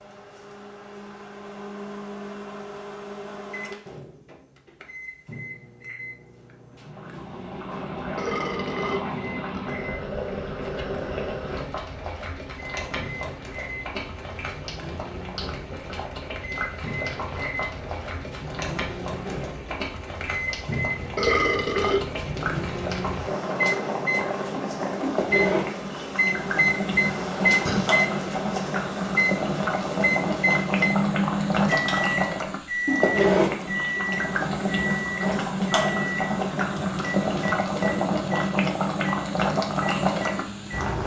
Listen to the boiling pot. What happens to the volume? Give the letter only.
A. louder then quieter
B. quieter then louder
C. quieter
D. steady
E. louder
E.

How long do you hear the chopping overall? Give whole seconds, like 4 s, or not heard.
not heard.